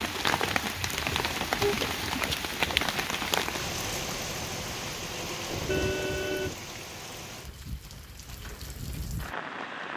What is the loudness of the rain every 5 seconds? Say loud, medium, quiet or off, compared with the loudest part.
loud, medium.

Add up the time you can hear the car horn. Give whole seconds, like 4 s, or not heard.
2 s.